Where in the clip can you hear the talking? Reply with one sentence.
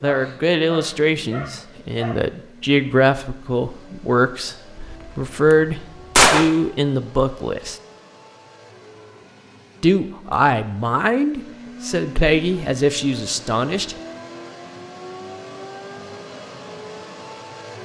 You can hear the talking from 0.0 to 4.5 s, from 5.2 to 7.8 s and from 9.8 to 13.9 s.